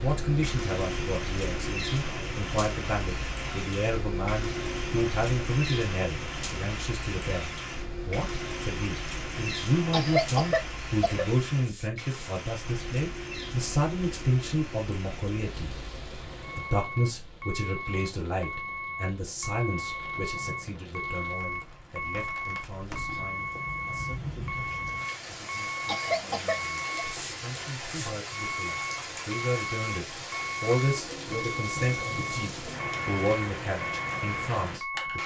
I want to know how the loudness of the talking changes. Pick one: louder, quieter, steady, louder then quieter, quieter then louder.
quieter then louder.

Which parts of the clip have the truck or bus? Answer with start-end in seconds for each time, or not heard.
0.0-35.2.